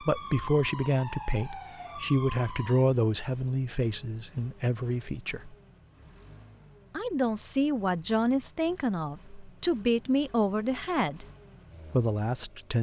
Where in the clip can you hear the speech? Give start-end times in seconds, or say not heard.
0.0-5.5, 6.9-11.2, 11.9-12.7.